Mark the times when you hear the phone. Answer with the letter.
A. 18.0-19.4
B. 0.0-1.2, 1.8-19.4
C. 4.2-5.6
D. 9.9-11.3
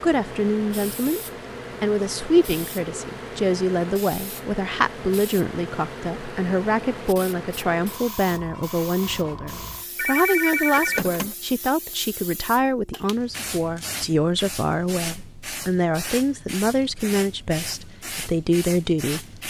D.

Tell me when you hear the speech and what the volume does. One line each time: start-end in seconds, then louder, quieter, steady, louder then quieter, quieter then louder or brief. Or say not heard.
0.0-1.2 brief
1.8-19.4 steady.